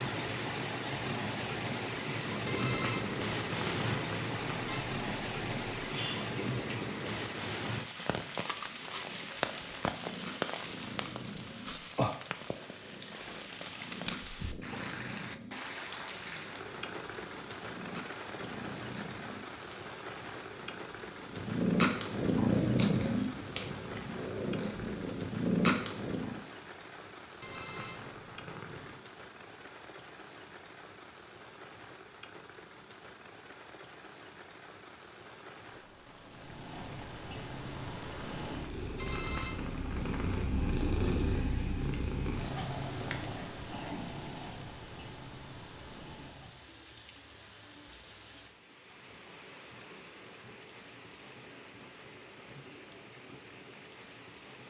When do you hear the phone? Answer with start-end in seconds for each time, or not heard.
2.5-4.8, 27.4-29.0, 39.0-40.5.